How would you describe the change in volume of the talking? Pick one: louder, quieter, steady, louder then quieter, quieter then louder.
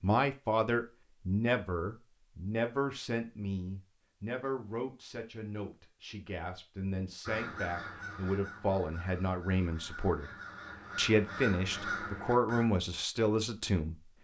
quieter then louder.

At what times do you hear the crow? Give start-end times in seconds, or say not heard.
7.2-12.7.